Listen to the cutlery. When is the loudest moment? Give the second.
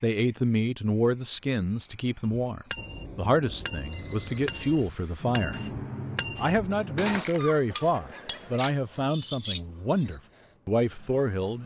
9 s.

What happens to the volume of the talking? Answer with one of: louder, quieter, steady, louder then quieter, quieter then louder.
steady.